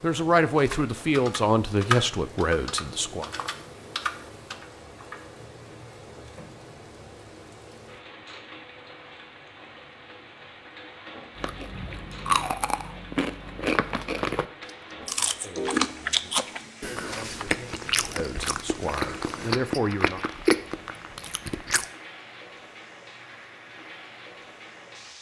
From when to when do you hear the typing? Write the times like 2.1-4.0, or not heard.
0.6-6.8.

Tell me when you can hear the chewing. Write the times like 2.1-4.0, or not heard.
11.3-21.9.